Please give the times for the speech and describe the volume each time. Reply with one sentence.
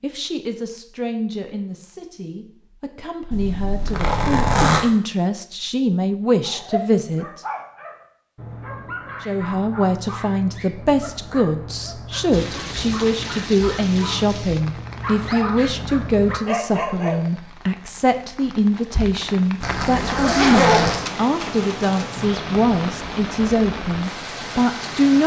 The speech can be heard from 0.0 to 7.4 s, getting quieter then louder; and from 9.2 to 25.2 s, at a steady volume.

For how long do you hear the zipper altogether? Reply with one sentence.
The zipper can be heard for 3 seconds in total.